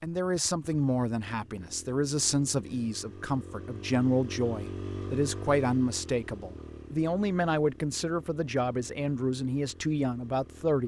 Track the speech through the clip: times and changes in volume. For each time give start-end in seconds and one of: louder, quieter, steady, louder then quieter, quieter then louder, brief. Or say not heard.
0.0-10.8 steady.